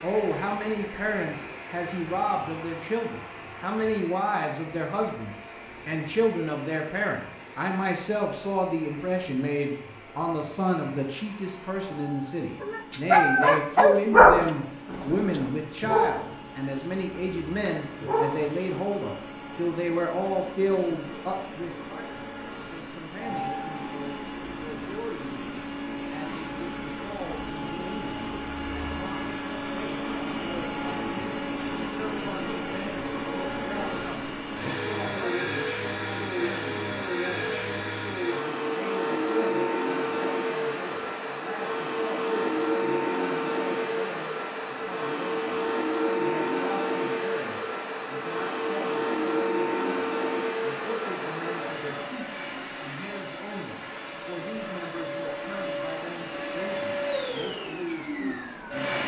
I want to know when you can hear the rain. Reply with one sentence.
The rain can't be heard in this clip.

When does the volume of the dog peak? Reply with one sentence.
The volume of the dog peaks at 14 seconds.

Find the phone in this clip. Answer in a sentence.
The phone can't be heard in this clip.